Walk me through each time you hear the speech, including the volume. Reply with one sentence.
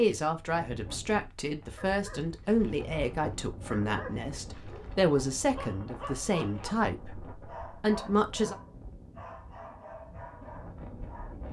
The speech can be heard from 0.0 to 8.6 s, at a steady volume.